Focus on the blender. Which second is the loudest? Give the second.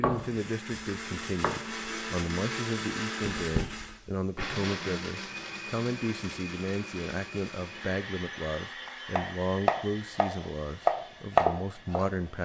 3 s.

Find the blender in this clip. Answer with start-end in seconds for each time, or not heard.
0.0-12.3.